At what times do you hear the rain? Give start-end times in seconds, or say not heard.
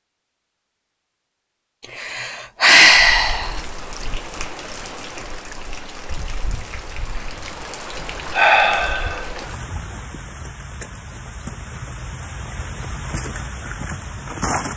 2.8-14.7.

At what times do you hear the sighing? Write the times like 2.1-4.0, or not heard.
1.9-3.6, 8.3-9.2.